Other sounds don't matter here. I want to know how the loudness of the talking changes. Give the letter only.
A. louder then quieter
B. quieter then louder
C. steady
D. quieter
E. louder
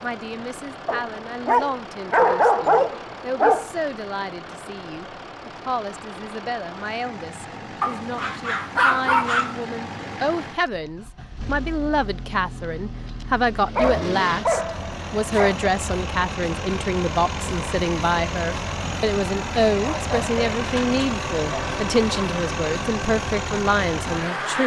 E.